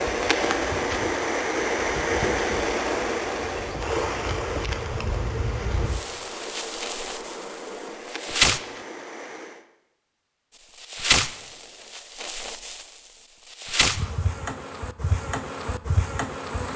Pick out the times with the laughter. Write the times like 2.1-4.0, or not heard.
not heard.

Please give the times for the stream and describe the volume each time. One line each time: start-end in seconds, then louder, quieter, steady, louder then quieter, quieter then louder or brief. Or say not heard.
0.0-9.7 quieter.